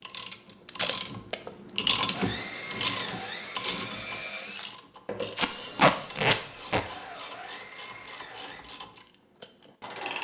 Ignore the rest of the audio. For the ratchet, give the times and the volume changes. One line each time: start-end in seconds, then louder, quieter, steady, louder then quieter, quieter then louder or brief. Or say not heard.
0.0-10.2 quieter.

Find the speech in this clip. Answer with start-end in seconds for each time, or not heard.
not heard.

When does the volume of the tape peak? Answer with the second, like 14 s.
6 s.